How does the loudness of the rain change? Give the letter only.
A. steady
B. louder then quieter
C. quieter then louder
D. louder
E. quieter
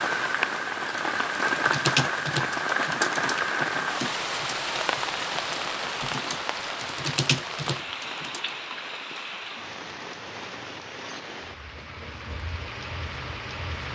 E.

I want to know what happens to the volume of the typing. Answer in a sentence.
The loudness of the typing goes down, then up.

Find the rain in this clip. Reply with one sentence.
You can hear the rain from 0.0 to 13.8 s.